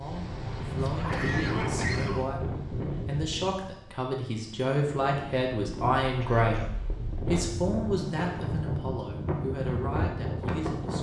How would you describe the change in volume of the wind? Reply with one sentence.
The volume of the wind goes down, then up.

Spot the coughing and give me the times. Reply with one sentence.
You can hear the coughing from 0.8 to 2.4 s and from 6.2 to 6.8 s.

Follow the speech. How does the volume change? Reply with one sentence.
The volume of the speech goes up, then down.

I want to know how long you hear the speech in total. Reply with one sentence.
The speech can be heard for 11 seconds in total.